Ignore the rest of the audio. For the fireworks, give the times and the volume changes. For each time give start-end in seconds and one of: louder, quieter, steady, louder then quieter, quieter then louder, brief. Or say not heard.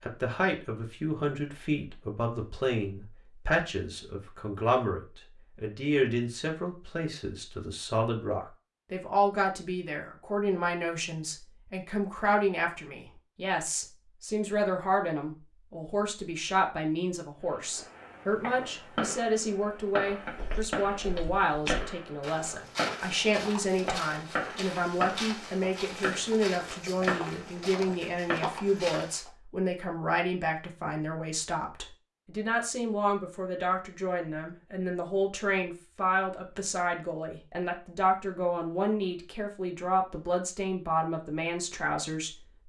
17.6-28.8 steady.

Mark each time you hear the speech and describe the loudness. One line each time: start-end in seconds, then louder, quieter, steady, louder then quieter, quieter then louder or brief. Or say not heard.
0.0-42.4 steady.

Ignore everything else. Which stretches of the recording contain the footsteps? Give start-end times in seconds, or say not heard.
20.2-29.3.